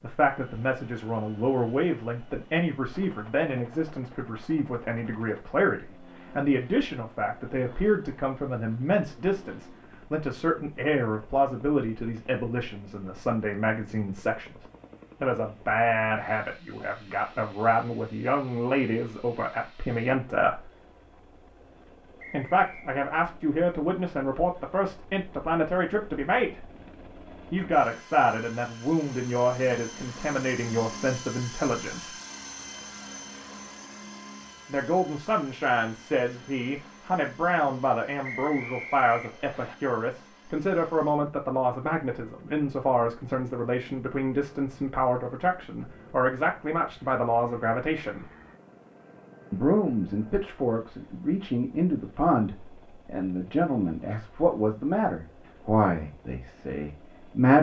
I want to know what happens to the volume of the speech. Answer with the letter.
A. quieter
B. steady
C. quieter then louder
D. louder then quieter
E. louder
B.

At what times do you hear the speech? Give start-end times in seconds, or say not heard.
0.0-20.6, 22.3-26.6, 27.5-32.1, 34.6-48.2, 49.5-57.5.